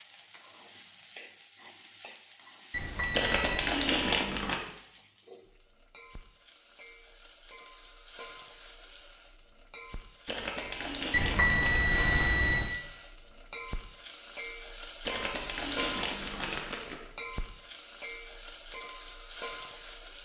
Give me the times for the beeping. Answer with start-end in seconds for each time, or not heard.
2.7-3.8, 11.1-12.8.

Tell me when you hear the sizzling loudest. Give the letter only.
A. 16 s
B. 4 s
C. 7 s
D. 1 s
A.